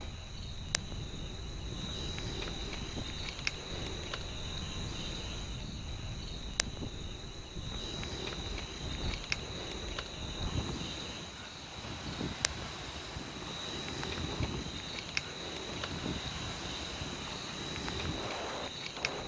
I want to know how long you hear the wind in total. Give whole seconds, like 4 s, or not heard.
19 s.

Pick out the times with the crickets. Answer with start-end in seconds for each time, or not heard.
0.0-19.2.